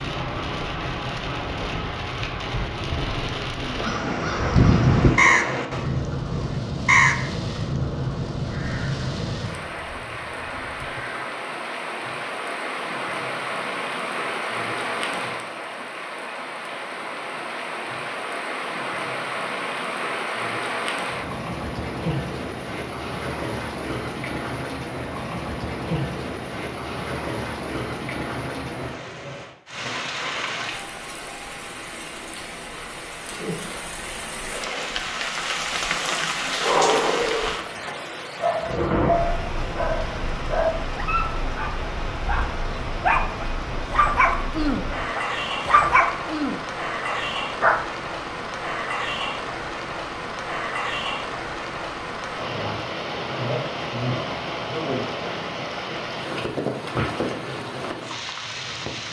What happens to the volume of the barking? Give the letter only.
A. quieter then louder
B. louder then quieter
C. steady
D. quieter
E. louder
E.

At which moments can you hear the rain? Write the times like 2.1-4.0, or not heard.
0.0-59.0.